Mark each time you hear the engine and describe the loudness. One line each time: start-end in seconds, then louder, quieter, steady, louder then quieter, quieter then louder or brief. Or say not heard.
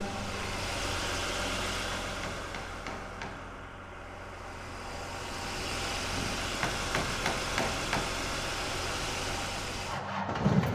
0.0-10.7 quieter then louder.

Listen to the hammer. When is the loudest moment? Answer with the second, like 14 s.
7 s.